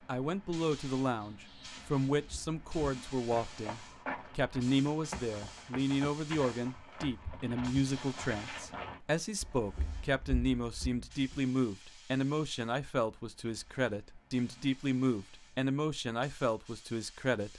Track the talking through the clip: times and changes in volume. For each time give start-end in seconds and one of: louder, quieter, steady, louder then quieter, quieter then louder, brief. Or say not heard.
0.1-17.5 steady.